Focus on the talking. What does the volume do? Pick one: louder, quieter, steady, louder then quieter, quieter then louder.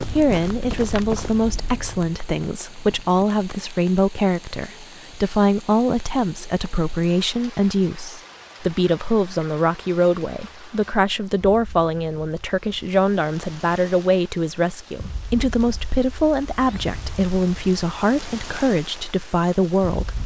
steady.